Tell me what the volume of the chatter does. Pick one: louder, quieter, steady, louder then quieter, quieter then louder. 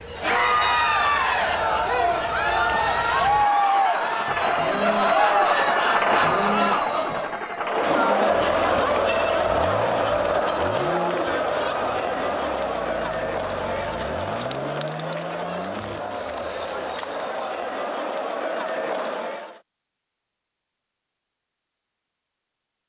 quieter.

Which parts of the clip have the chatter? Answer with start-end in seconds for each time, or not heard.
0.1-19.6.